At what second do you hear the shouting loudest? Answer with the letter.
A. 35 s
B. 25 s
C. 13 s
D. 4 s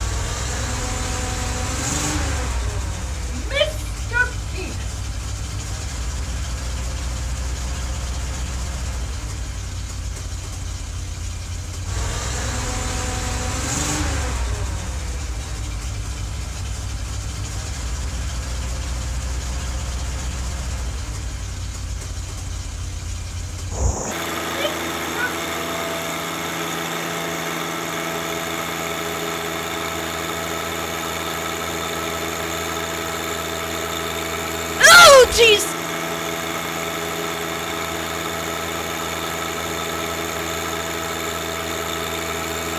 A.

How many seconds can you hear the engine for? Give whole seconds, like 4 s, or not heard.
43 s.